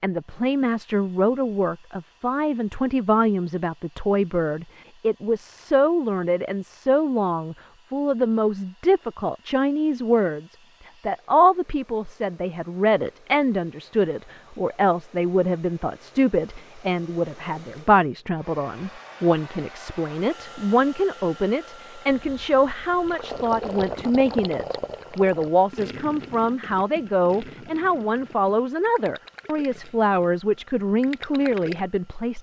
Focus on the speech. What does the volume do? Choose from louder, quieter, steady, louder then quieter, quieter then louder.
steady.